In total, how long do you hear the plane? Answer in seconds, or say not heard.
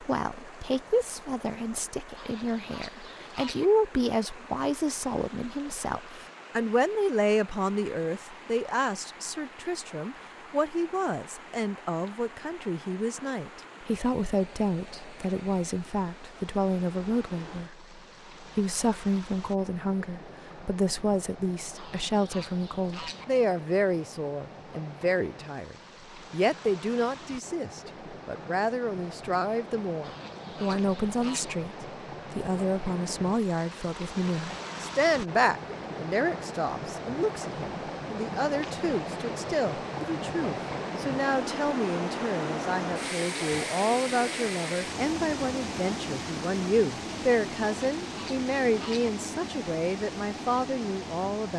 not heard.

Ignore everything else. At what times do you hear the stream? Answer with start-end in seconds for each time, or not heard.
0.0-51.5.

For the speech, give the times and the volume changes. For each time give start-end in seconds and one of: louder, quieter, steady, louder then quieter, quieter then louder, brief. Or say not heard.
0.0-51.5 steady.